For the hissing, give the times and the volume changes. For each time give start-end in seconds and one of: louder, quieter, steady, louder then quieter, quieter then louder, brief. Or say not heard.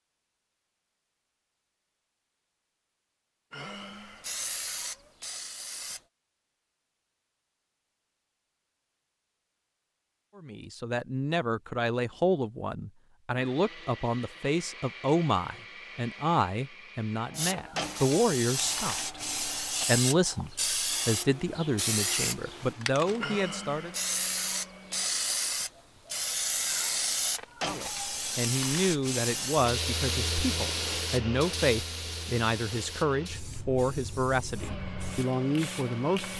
3.5-6.0 brief
17.4-36.3 quieter.